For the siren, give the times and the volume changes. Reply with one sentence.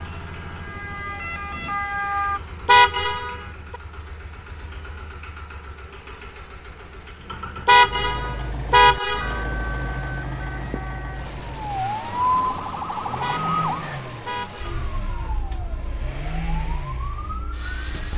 You can hear the siren briefly from 0.0 to 2.4 s; and from 9.2 to 18.1 s, getting louder then quieter.